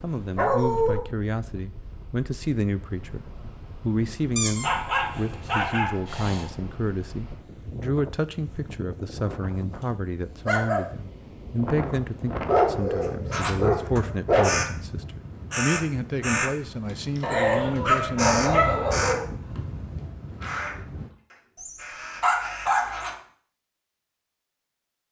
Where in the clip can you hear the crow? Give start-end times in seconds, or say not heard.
13.0-14.7, 15.5-16.5, 17.1-19.6, 20.4-23.1.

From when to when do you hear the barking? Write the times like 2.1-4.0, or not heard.
0.3-1.0, 4.3-6.5, 9.4-10.8, 12.4-14.6, 17.2-19.2, 21.6-23.0.